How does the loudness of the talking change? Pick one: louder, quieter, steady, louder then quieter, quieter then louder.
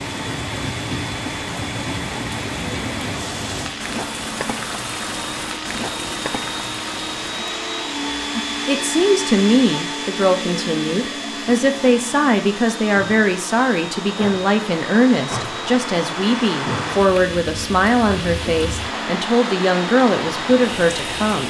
steady.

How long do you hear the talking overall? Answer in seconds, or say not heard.
13 s.